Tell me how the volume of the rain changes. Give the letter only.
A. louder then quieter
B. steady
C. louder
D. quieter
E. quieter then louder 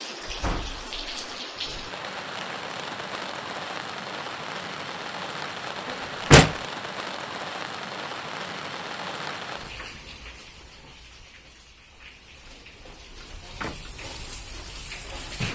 D.